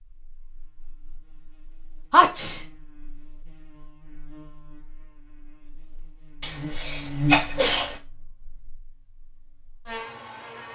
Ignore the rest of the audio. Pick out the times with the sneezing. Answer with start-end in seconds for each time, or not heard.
2.1-2.6, 6.4-8.0.